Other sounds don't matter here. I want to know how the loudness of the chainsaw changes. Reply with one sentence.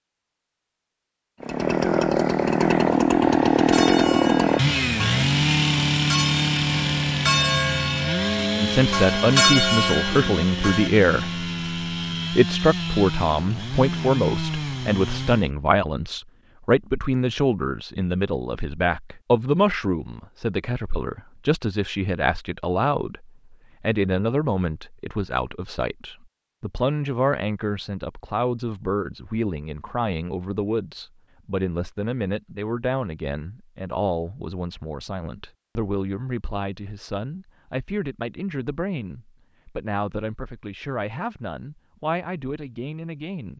The loudness of the chainsaw goes down.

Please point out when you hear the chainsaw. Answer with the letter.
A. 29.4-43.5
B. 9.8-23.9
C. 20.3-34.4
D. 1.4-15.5
D.